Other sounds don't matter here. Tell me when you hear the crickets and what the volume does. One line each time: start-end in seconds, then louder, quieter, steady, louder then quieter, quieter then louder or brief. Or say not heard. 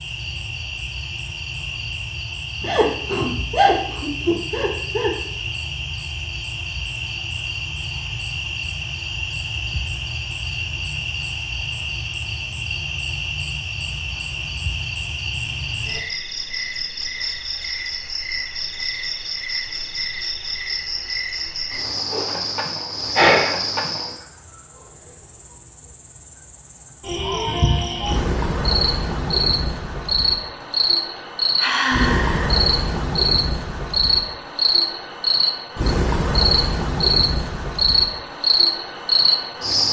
0.0-39.8 louder.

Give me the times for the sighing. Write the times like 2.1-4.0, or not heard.
2.6-5.2, 23.1-23.6, 30.6-32.7.